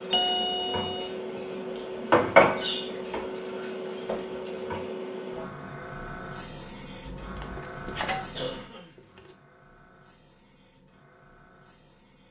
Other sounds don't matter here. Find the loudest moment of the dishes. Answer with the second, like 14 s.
2 s.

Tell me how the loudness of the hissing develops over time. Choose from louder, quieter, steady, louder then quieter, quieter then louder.
quieter.